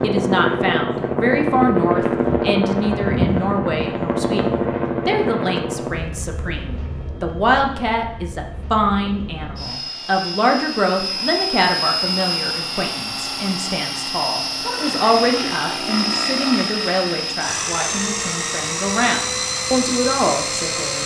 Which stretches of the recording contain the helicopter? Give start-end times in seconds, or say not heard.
0.0-21.0.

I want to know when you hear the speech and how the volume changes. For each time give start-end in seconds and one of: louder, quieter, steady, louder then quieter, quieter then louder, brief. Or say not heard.
0.0-21.0 steady.